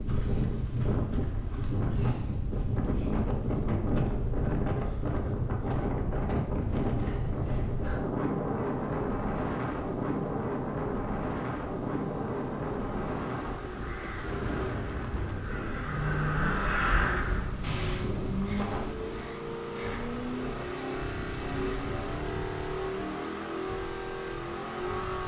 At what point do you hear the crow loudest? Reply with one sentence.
The volume of the crow peaks at 17 seconds.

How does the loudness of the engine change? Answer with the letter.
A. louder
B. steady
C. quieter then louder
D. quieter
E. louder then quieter
A.